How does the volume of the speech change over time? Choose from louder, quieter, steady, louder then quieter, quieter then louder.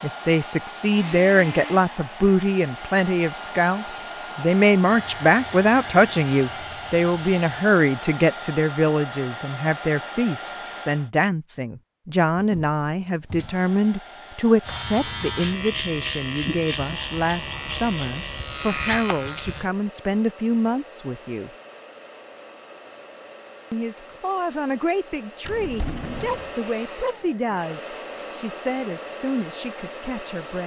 quieter.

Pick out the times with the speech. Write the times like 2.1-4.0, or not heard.
0.0-21.5, 23.7-30.6.